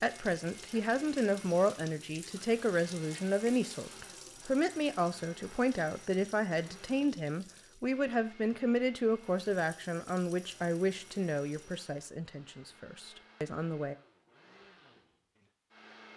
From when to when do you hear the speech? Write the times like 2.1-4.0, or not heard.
0.0-13.9.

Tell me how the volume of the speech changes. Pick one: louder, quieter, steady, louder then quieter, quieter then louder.
quieter.